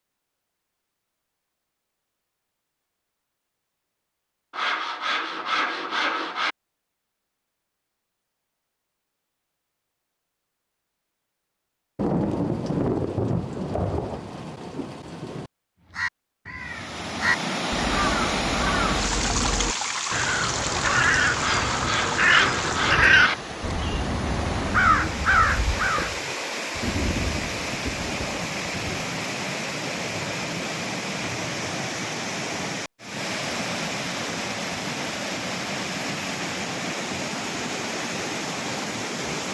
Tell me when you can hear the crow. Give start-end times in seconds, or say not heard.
15.9-26.2.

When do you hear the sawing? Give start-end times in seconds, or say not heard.
4.5-6.5, 21.4-23.4.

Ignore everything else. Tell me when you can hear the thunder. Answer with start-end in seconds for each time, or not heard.
11.9-15.5, 26.7-29.1.